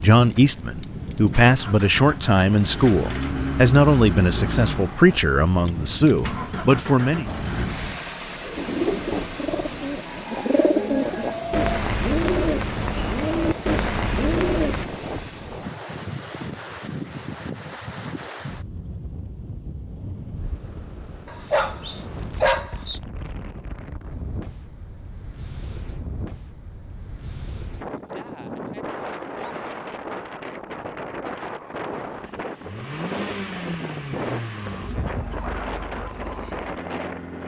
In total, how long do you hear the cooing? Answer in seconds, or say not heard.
6 s.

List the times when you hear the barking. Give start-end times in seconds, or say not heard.
21.2-23.0.